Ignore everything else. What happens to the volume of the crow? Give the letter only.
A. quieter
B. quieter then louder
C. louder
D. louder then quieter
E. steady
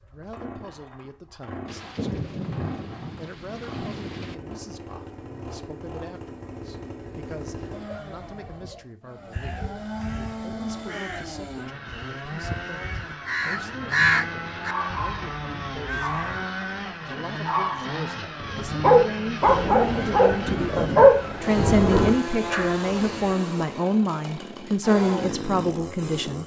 D.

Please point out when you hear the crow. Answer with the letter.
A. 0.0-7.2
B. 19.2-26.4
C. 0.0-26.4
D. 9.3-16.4
D.